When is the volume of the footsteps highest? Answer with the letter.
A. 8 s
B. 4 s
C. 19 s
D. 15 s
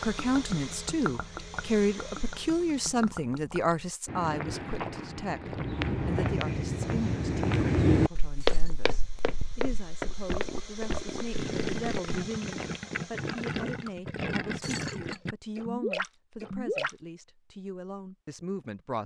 A.